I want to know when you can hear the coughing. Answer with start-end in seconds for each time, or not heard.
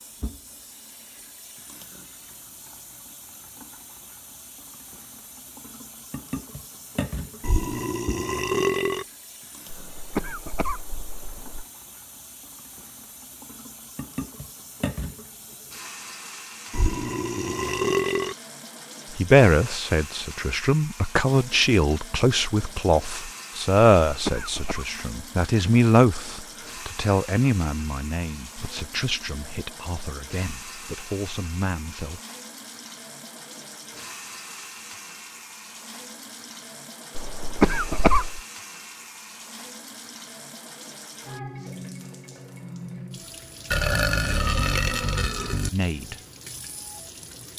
9.7-11.7, 24.1-24.9, 37.1-38.4.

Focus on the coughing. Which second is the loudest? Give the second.
38 s.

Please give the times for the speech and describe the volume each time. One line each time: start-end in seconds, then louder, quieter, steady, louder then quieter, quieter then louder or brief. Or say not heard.
19.1-32.2 quieter
45.7-46.2 brief.